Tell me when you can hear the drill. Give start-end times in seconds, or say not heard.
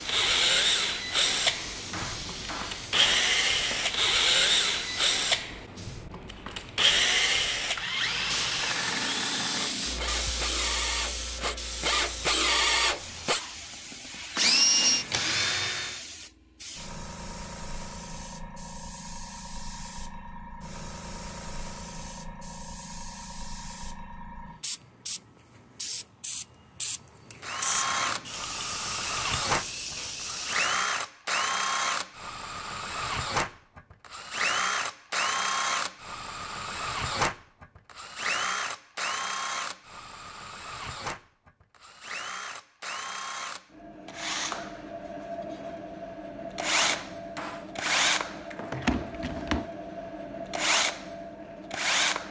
0.1-16.0, 27.4-52.2.